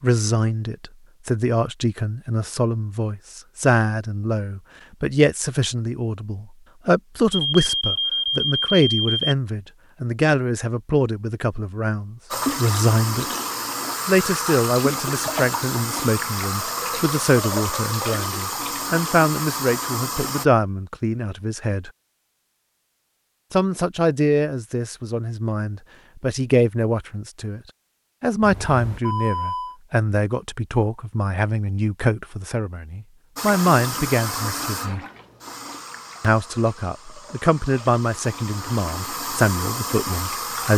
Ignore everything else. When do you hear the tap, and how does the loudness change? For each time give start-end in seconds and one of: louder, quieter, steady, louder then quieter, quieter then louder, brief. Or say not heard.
12.3-20.4 steady
33.4-40.7 quieter then louder.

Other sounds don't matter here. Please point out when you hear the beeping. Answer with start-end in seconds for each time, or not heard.
7.3-9.3, 28.4-29.8.